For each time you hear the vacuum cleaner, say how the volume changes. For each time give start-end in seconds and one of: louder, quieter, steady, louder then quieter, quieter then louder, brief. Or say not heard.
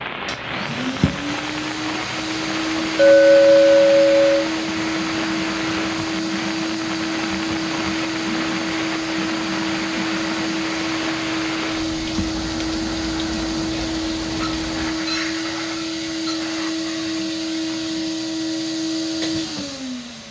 0.2-20.2 steady.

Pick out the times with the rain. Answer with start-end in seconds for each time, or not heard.
0.0-15.0.